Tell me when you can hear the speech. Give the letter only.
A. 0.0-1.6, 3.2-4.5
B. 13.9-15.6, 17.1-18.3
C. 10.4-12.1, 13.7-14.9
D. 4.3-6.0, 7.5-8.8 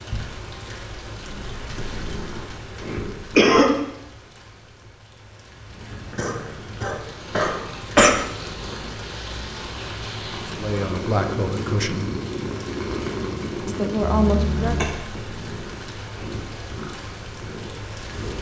C.